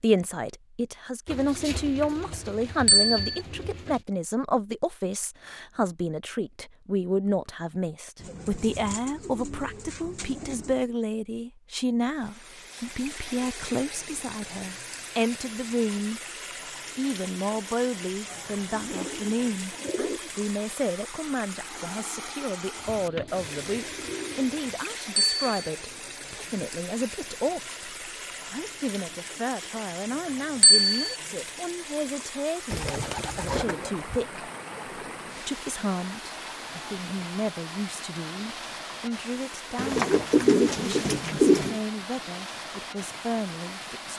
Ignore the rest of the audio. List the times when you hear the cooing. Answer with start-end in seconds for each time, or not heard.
1.2-4.0, 8.2-10.9, 18.2-20.2, 22.7-24.8, 32.7-34.1, 39.8-41.8.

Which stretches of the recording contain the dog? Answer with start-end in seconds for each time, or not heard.
not heard.